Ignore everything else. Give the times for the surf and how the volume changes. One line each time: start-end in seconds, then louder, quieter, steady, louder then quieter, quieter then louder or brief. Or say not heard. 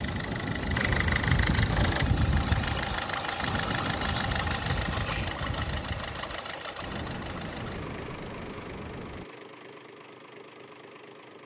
0.0-9.2 quieter.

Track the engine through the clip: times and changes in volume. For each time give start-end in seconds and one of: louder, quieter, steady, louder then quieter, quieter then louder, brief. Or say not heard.
0.0-11.4 quieter.